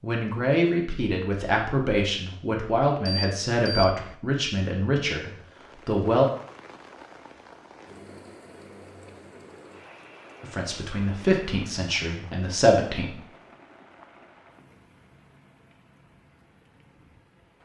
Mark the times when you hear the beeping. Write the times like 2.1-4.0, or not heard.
3.0-4.2.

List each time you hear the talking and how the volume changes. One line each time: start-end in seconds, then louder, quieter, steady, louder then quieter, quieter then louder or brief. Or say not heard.
0.0-6.2 steady
10.4-13.2 brief.